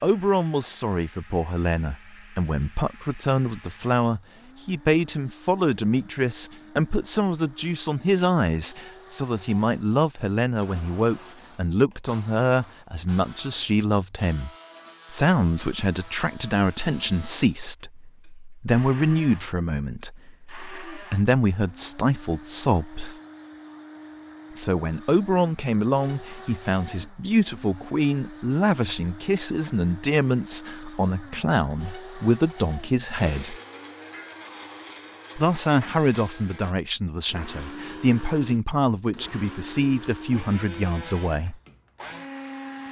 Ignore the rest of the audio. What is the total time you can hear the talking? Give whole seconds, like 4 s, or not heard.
38 s.